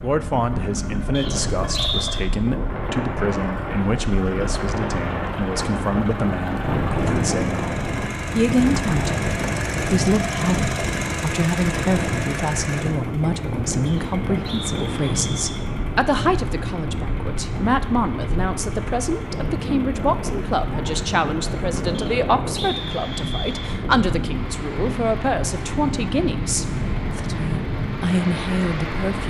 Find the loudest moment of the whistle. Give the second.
2 s.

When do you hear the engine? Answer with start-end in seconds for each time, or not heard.
0.0-29.2.